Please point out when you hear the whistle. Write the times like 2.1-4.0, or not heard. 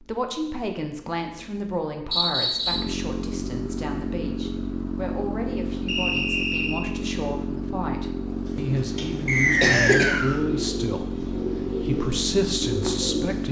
2.1-2.9, 5.8-6.8, 9.2-10.4.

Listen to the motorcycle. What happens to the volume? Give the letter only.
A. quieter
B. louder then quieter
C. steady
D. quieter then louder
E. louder
E.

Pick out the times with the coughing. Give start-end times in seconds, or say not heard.
9.6-10.2.